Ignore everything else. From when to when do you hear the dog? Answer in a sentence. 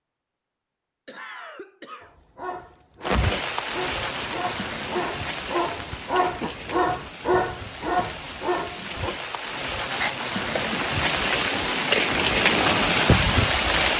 You can hear the dog from 2.0 to 9.2 s.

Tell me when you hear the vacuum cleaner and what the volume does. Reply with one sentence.
You can't hear the vacuum cleaner here.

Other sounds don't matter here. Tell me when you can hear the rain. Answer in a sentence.
The rain can be heard from 3.0 to 13.9 s.